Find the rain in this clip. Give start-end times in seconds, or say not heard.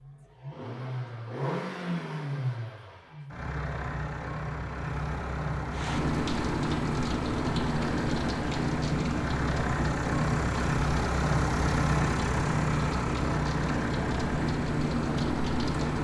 5.7-15.9.